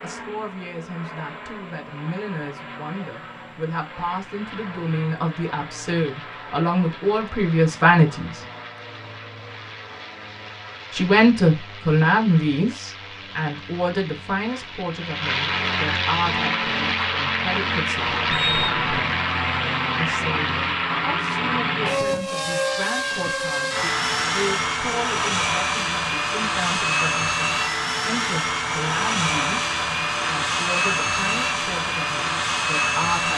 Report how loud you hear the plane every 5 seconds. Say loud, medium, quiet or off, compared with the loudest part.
quiet, quiet, quiet, loud, loud, loud, loud.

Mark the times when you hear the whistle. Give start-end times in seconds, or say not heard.
18.3-19.1.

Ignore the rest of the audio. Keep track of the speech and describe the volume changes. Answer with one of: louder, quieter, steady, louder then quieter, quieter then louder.
louder then quieter.